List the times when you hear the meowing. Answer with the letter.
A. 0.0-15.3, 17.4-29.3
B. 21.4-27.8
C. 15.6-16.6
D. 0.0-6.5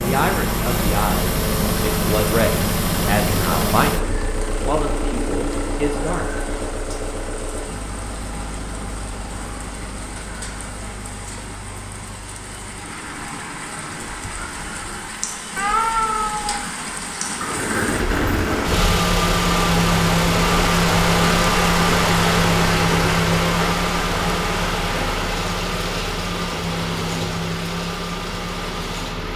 C.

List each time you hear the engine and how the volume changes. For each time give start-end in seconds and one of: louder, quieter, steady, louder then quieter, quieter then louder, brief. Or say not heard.
0.0-15.3 quieter
17.4-29.3 quieter.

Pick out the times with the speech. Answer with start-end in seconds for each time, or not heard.
0.0-6.5.